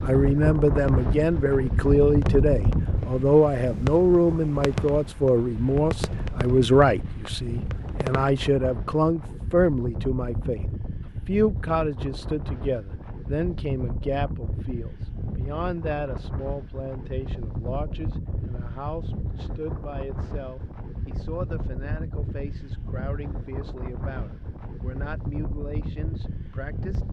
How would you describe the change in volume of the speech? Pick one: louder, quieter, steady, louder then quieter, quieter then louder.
quieter.